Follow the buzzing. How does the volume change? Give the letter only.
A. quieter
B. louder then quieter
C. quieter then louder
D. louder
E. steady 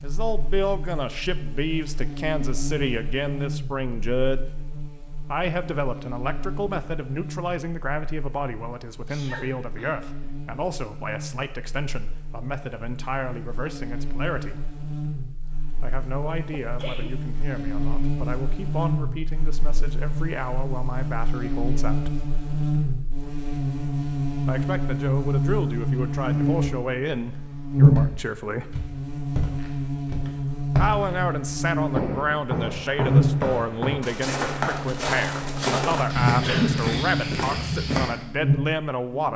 D.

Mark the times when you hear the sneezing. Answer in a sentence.
You can hear the sneezing from 9.1 to 10.1 s, from 16.5 to 17.1 s and from 36.4 to 36.9 s.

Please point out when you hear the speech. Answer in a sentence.
You can hear the speech from 0.0 to 4.5 s, from 5.2 to 14.6 s, from 15.8 to 22.1 s, from 24.4 to 28.8 s and from 30.8 to 39.3 s.